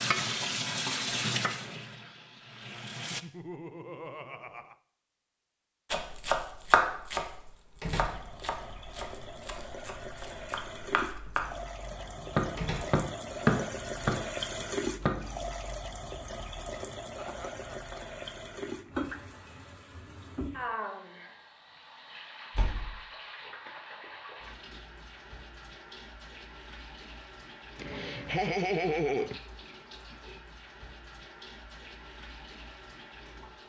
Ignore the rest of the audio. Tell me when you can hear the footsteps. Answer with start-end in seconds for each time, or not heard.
not heard.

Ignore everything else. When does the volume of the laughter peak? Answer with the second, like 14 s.
29 s.